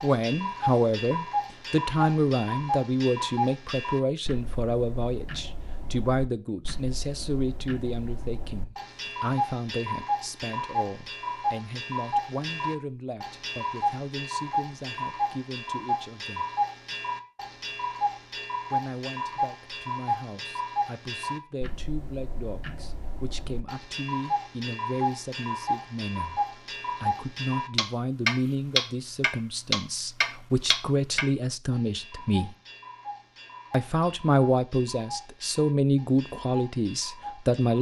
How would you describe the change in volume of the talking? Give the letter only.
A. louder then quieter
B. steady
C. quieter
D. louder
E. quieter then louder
E.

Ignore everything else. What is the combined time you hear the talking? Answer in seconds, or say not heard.
34 s.